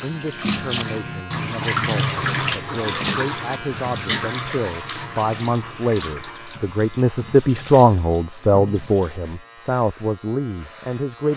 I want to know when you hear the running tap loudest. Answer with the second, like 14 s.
2 s.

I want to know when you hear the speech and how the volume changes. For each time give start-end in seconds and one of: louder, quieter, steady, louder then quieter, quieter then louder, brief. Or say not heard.
0.0-11.3 louder then quieter.